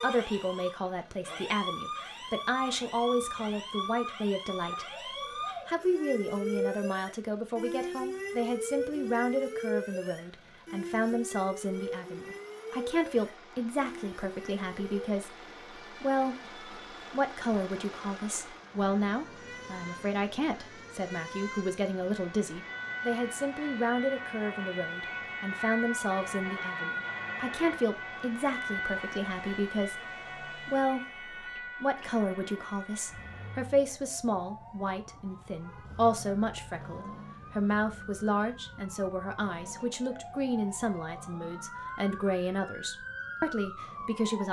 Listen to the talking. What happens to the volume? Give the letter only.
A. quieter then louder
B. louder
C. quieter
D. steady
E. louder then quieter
D.